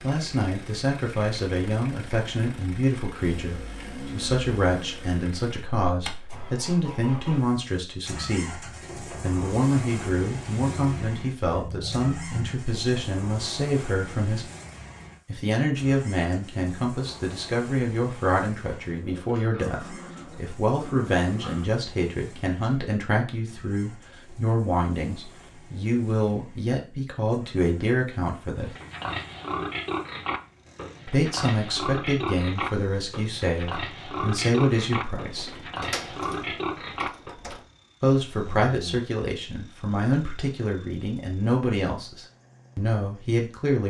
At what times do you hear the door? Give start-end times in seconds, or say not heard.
35.1-37.6.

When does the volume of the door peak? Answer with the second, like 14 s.
36 s.